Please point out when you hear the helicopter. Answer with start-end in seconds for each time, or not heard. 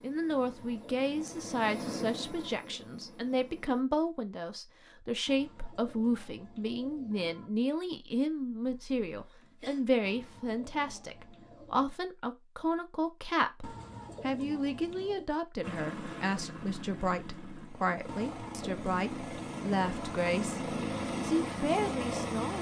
0.0-3.9, 15.6-22.5.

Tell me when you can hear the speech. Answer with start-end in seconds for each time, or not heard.
0.0-22.5.